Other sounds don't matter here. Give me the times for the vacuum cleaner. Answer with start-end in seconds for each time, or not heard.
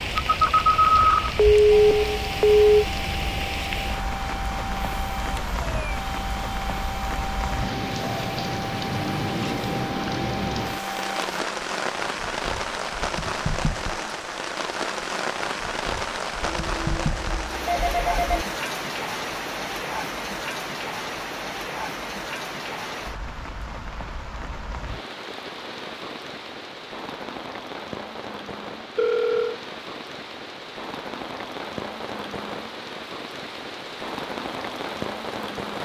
1.7-11.4.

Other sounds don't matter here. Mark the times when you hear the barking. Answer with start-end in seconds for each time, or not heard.
not heard.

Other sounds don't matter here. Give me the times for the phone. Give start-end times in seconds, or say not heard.
0.1-2.6, 16.4-18.4, 28.9-29.6.